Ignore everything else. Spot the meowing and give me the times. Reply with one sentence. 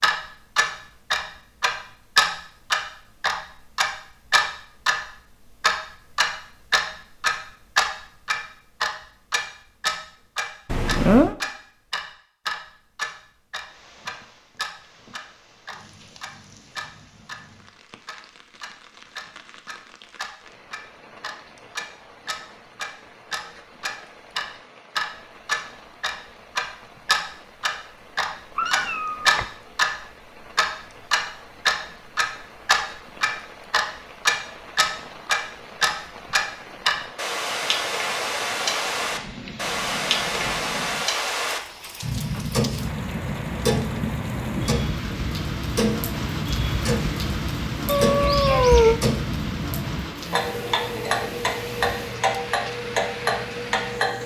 The meowing can be heard from 10.7 to 11.3 s, from 28.6 to 29.4 s and from 47.9 to 49.0 s.